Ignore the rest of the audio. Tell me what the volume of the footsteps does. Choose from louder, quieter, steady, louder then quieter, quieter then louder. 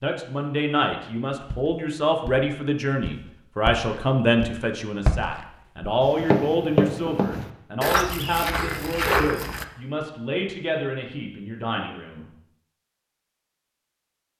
louder.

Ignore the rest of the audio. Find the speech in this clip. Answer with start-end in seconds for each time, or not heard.
0.0-12.2.